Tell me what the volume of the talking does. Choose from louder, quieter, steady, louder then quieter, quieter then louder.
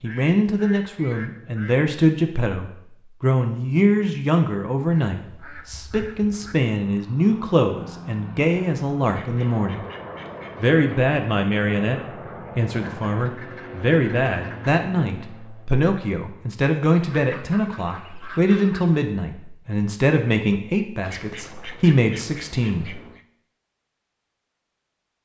steady.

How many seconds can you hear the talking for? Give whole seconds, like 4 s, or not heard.
22 s.